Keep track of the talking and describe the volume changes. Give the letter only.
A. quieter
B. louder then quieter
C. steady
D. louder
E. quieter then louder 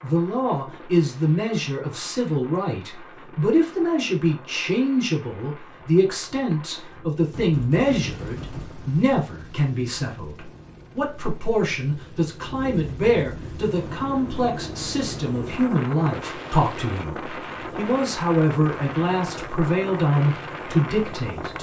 C.